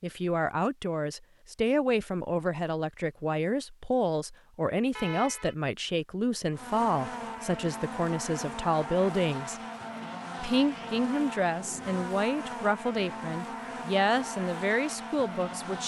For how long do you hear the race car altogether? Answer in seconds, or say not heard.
9 s.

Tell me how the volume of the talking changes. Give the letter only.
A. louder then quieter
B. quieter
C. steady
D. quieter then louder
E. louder
C.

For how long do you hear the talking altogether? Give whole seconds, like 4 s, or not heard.
15 s.